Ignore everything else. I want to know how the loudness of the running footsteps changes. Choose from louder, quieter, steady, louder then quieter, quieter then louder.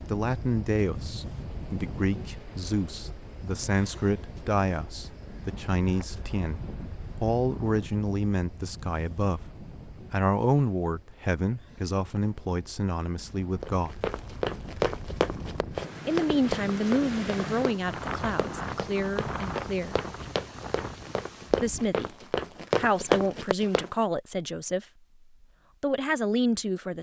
quieter then louder.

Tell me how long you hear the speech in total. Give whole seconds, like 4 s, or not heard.
22 s.